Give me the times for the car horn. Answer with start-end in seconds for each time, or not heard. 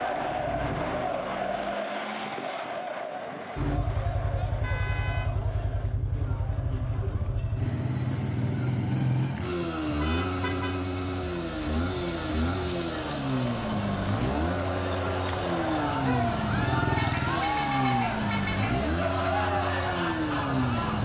4.6-5.3, 10.0-10.8, 16.9-18.9.